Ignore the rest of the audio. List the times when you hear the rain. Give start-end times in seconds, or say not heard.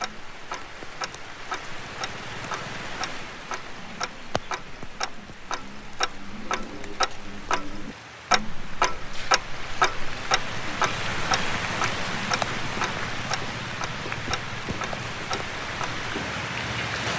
0.0-17.1.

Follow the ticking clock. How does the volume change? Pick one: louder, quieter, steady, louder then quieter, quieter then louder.
louder then quieter.